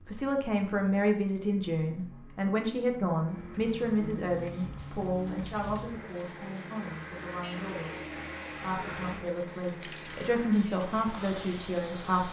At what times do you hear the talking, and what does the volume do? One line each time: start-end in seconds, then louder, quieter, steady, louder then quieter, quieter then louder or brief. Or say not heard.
0.0-12.2 quieter then louder.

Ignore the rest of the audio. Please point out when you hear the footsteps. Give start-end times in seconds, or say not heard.
not heard.